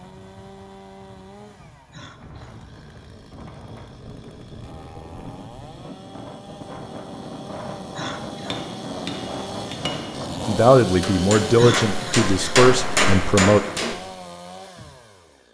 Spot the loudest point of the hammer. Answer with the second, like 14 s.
13 s.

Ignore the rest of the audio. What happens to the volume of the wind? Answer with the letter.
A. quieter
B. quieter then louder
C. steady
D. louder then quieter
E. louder
E.